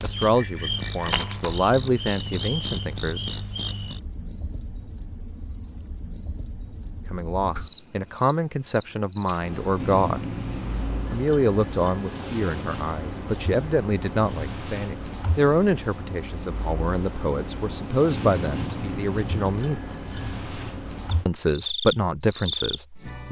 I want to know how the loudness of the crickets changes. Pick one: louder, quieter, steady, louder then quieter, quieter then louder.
steady.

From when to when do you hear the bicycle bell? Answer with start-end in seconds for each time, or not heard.
0.3-1.4, 9.8-12.2, 18.1-20.4.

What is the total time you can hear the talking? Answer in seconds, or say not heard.
17 s.